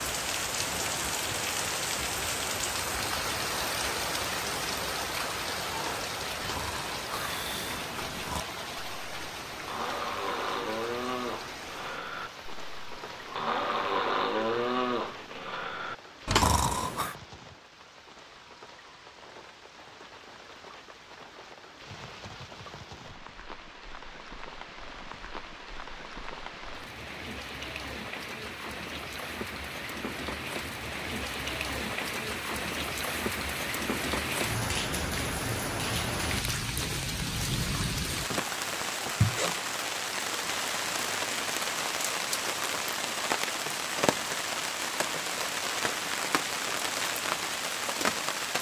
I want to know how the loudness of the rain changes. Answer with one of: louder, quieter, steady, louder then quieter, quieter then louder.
quieter then louder.